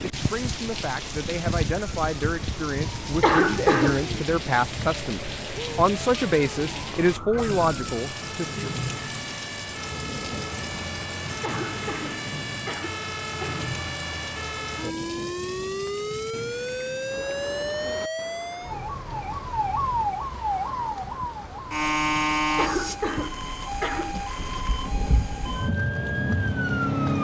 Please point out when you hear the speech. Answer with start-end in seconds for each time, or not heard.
0.1-8.8.